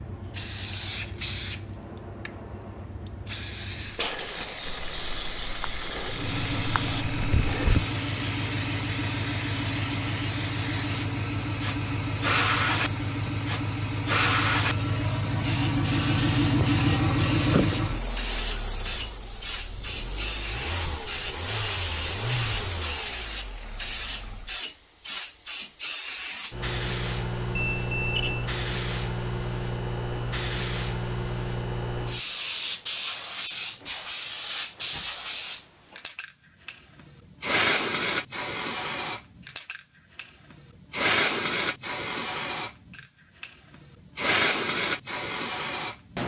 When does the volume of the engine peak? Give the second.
17 s.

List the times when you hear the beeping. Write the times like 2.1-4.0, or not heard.
27.6-28.5.